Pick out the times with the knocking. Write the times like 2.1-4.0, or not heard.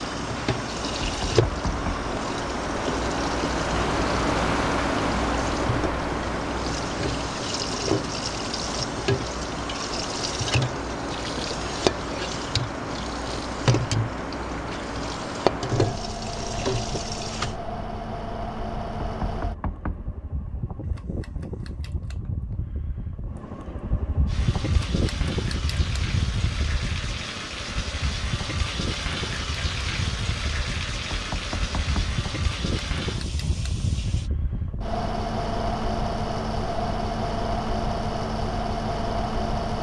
1.0-2.1, 19.0-20.1, 31.1-32.2.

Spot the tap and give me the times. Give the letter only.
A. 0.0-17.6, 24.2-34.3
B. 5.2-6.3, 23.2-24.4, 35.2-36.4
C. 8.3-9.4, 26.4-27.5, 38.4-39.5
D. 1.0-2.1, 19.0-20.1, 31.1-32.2
A.